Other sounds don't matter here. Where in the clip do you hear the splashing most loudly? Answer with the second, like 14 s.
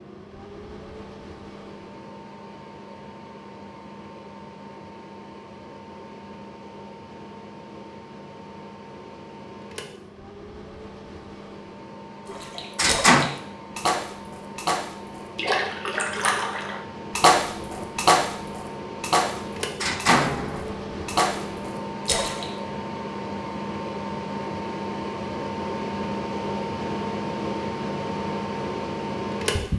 17 s.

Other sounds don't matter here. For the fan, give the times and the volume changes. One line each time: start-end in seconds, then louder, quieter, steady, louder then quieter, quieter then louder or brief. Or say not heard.
0.0-29.7 louder.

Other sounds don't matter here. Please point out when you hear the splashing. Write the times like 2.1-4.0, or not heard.
12.3-22.5.